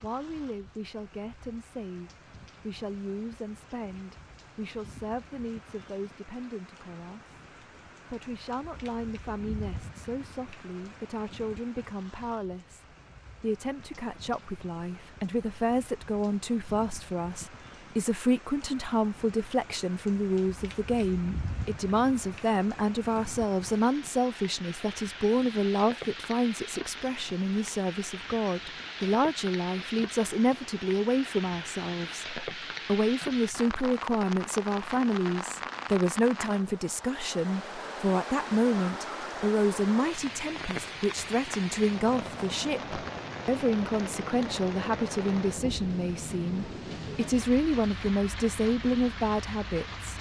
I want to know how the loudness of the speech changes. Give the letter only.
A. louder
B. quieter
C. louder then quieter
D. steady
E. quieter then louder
A.